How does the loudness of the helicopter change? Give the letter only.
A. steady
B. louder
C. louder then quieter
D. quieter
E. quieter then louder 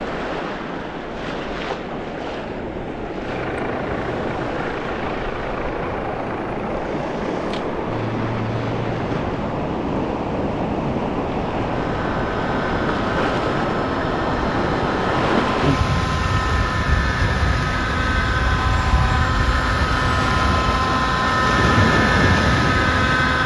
B.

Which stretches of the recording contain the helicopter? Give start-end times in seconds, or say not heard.
3.1-23.4.